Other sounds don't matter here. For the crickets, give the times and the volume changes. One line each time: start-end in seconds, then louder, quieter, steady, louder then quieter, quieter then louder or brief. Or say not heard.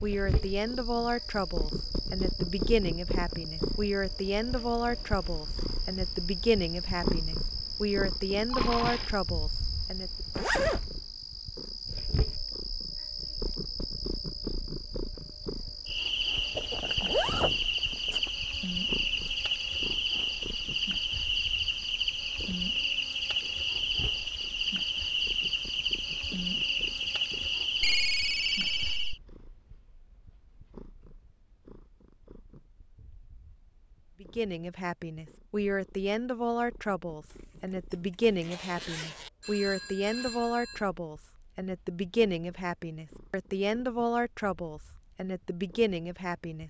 0.0-29.2 louder.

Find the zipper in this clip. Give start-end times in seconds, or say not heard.
10.3-10.8, 16.6-18.3, 37.3-39.3.